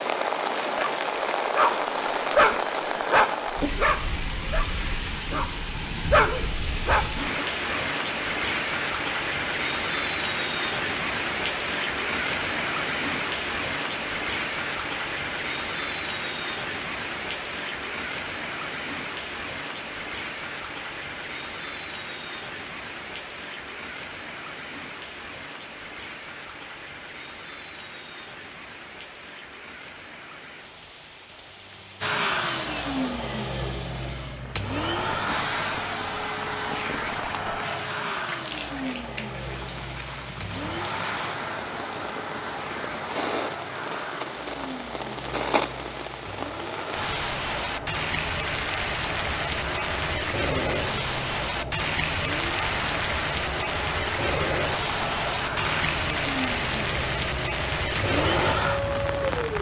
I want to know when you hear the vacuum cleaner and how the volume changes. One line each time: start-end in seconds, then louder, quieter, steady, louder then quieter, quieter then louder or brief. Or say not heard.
32.0-59.5 quieter then louder.